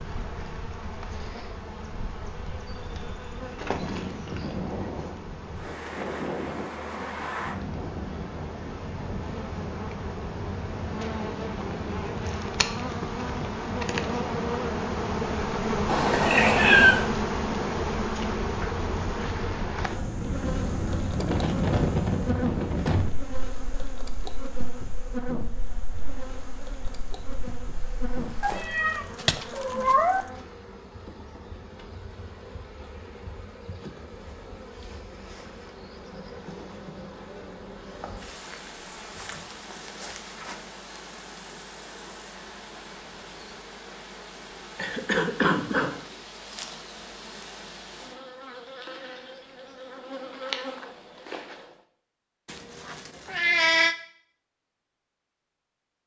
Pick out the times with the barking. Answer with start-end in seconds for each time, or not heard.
not heard.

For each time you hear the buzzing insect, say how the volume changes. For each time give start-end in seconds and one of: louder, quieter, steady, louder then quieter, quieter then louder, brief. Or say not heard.
0.0-51.8 louder then quieter.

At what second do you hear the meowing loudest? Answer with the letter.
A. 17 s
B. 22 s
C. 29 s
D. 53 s
A.